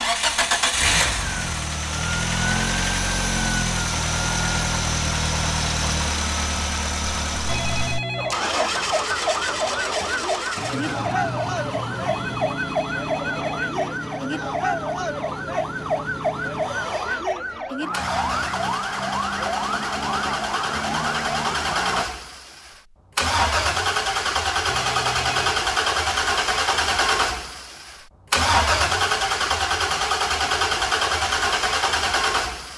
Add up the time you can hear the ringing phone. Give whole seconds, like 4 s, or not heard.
4 s.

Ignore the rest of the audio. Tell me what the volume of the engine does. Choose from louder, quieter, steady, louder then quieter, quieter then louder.
quieter then louder.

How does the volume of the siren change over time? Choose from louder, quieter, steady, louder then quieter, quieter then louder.
steady.